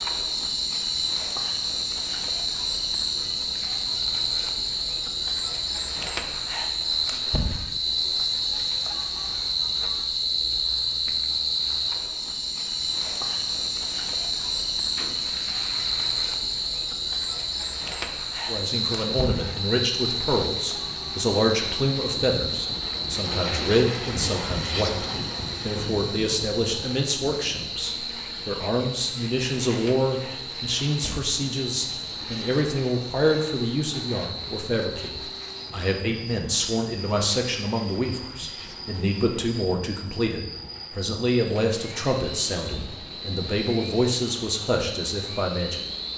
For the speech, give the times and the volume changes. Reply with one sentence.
The speech can be heard from 18.4 to 45.8 s, at a steady volume.